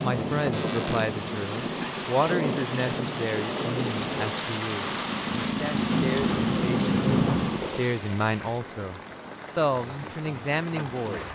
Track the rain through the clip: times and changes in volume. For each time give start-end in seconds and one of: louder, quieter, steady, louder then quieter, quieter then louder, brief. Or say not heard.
0.0-11.3 quieter.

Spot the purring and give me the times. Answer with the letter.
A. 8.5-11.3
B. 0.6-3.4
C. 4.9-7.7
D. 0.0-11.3
C.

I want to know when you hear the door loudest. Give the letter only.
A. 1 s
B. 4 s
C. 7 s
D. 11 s
C.